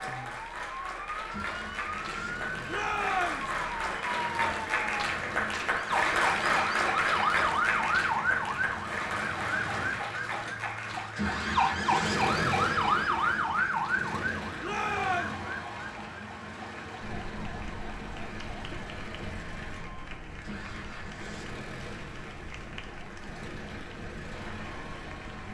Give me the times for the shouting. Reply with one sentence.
You can hear the shouting from 2.6 to 3.5 s and from 14.6 to 15.3 s.